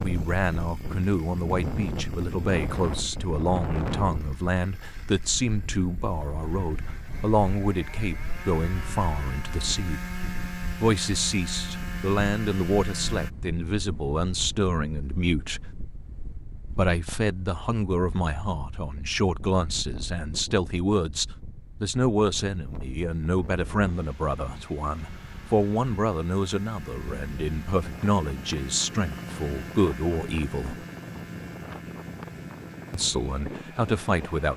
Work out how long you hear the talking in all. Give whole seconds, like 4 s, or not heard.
31 s.